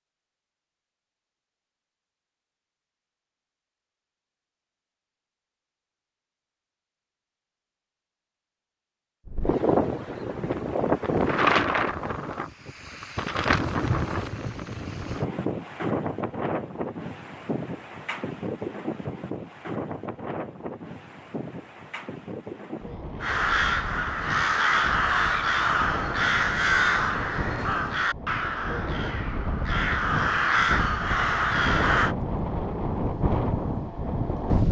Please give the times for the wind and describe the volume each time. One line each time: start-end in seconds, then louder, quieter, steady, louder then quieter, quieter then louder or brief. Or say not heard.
9.2-34.6 quieter then louder.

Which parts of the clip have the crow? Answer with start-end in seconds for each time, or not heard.
23.2-32.1.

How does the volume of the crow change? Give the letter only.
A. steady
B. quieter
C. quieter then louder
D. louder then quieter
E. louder
C.